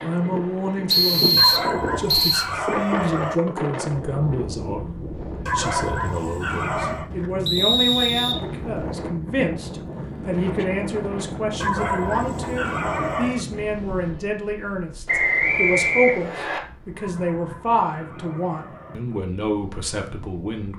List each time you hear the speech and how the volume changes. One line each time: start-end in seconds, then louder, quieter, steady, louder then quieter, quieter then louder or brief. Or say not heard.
0.0-20.7 steady.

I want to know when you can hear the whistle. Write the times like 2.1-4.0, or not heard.
0.8-2.5, 7.5-8.8, 15.1-16.6.